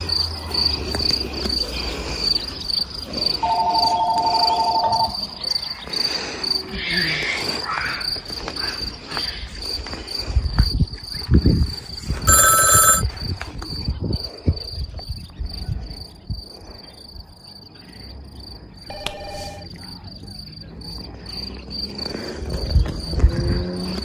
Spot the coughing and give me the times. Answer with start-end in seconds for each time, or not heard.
not heard.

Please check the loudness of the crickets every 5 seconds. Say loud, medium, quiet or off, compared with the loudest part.
loud, loud, loud, quiet, medium.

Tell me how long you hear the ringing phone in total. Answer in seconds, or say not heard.
3 s.